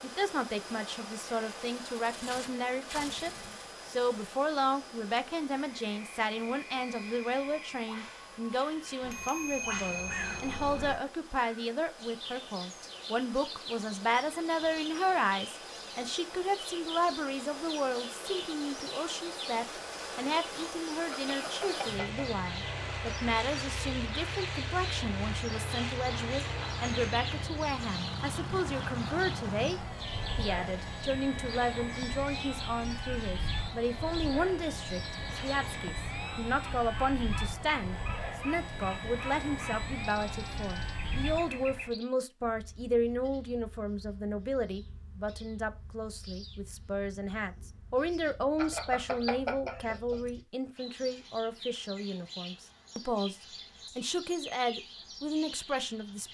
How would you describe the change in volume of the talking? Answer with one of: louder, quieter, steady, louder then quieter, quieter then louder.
steady.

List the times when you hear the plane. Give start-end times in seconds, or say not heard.
0.0-42.0.